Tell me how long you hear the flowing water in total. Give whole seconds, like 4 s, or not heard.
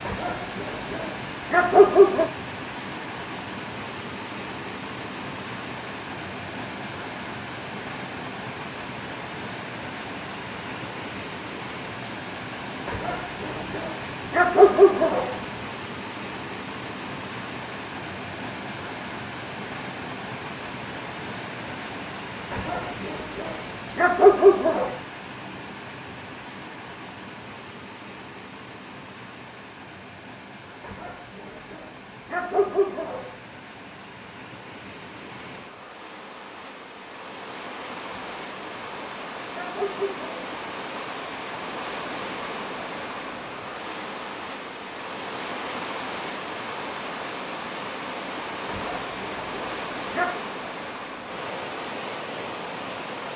53 s.